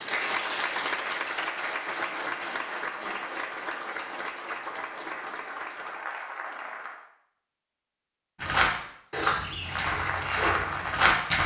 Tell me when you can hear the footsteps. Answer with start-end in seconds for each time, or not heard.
8.4-11.4.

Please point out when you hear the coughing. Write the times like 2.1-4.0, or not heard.
not heard.